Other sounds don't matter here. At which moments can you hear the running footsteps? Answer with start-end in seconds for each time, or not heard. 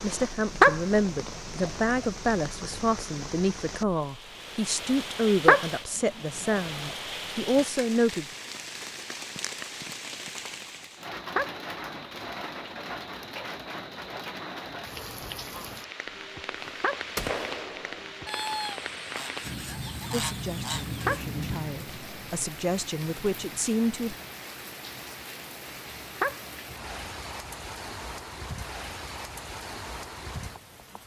not heard.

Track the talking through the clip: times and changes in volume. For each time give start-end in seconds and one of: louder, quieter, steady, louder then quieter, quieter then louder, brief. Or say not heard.
0.0-8.2 steady
20.1-24.1 louder.